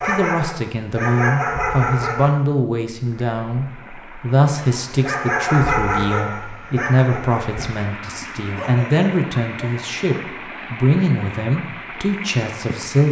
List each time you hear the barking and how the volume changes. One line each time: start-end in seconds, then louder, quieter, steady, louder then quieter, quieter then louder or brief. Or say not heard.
0.0-2.4 brief
4.6-9.8 quieter then louder.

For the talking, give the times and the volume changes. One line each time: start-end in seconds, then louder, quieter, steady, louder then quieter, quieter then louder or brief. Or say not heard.
0.1-13.0 steady.